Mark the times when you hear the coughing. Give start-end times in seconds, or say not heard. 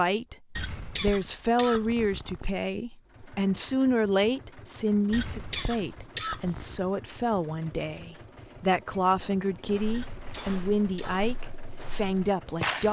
0.6-2.5, 5.1-6.8, 9.9-11.2.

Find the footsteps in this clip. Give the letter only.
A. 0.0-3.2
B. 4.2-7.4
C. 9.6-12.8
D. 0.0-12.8
C.